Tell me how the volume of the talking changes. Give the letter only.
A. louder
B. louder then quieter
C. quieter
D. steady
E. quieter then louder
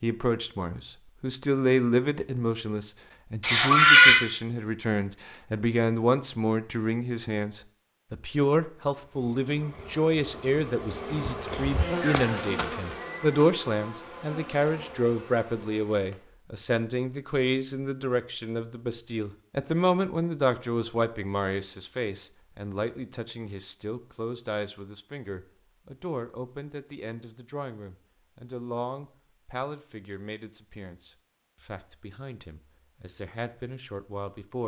C.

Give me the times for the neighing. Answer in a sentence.
The neighing can be heard from 3.4 to 4.2 s.